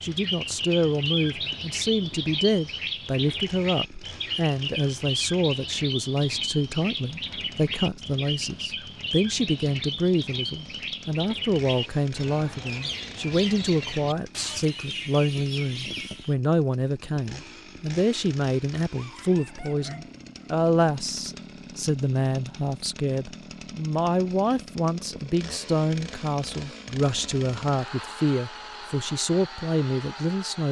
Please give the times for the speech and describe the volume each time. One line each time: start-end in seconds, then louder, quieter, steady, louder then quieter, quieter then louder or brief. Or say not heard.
0.0-30.6 steady.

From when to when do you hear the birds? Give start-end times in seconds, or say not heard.
0.0-16.4.